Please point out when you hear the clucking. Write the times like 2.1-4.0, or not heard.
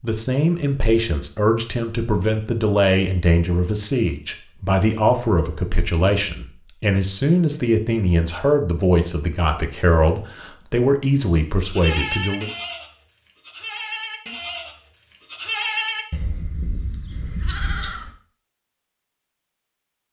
not heard.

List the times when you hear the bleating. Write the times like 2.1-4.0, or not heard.
11.7-18.1.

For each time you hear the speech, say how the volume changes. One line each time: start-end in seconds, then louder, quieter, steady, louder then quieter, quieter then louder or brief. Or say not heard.
0.0-12.5 steady.